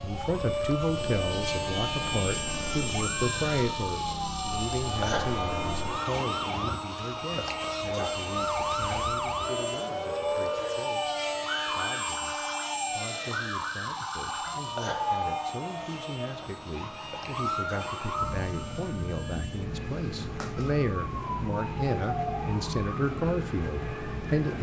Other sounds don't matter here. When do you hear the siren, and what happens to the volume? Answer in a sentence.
The siren can be heard from 0.0 to 24.5 s, at a steady volume.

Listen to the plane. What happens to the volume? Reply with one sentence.
The volume of the plane goes down.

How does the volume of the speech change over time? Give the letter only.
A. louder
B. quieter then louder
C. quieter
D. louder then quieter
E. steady
B.